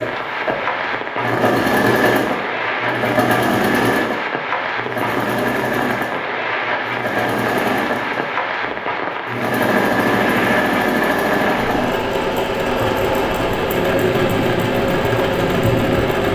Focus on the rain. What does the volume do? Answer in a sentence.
The volume of the rain stays about the same.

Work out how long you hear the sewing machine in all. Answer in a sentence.
You can hear the sewing machine for 16 seconds altogether.